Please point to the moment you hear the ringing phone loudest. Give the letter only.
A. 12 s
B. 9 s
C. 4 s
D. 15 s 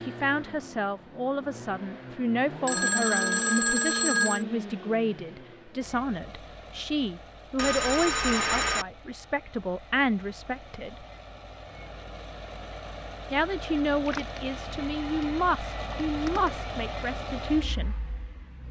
C.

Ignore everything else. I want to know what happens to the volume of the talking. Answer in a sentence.
The loudness of the talking stays about the same.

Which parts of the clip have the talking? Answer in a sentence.
The talking can be heard from 0.1 to 11.1 s and from 13.3 to 17.9 s.